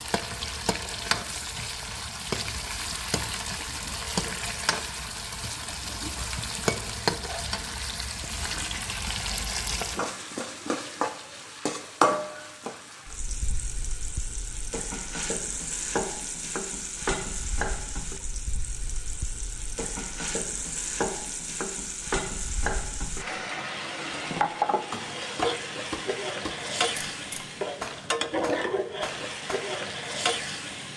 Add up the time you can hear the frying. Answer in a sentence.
The frying can be heard for 31 seconds in total.